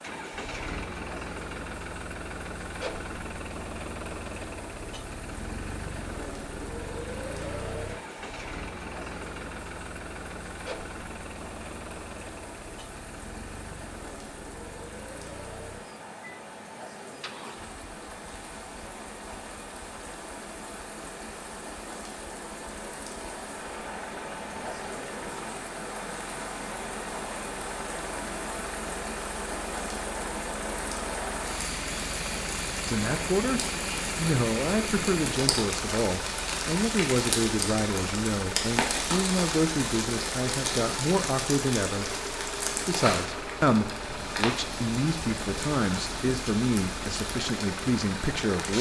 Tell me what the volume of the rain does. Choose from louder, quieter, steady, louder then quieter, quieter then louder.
louder.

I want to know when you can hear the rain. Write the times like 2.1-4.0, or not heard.
0.0-48.7.